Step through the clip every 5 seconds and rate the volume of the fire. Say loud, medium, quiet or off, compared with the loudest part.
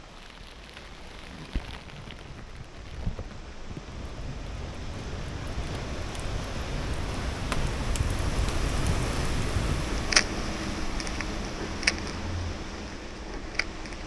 quiet, medium, loud.